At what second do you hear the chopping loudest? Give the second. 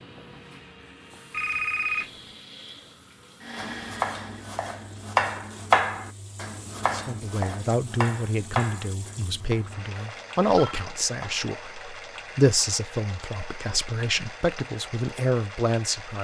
6 s.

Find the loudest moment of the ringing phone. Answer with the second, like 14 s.
2 s.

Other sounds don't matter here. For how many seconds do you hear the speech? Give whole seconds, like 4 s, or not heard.
9 s.